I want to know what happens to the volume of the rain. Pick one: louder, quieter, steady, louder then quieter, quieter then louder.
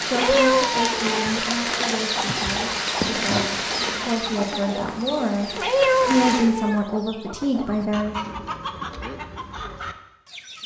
quieter.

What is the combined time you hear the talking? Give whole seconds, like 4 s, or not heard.
8 s.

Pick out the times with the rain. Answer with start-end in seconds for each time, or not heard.
0.0-6.5.